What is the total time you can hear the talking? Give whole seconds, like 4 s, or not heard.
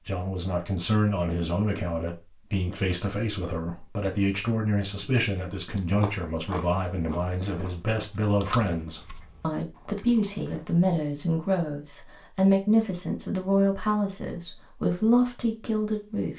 16 s.